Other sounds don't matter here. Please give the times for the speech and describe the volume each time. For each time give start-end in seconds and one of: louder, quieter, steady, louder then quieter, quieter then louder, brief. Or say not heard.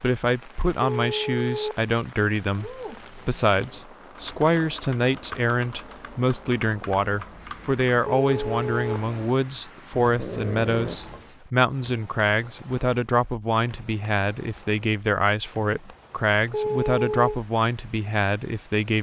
0.0-18.9 steady.